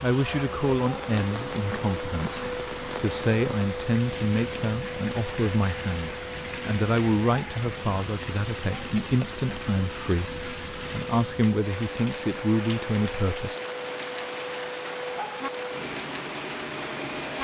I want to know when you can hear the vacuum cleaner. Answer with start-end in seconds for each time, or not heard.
0.0-17.4.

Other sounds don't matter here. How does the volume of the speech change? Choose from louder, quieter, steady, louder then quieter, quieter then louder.
steady.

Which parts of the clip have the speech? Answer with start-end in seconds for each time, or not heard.
0.0-13.6.